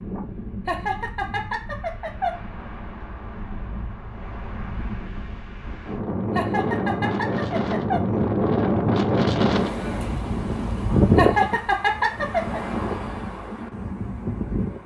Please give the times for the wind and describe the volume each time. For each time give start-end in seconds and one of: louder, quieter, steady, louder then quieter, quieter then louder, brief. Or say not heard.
0.0-14.8 louder then quieter.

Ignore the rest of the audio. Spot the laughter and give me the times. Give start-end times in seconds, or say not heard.
0.7-2.4, 6.3-8.1, 11.2-12.6.